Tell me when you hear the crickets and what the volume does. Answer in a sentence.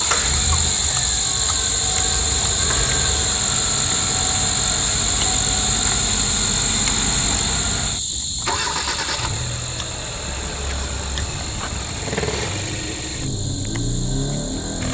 The crickets can be heard from 0.0 to 14.8 s, getting quieter.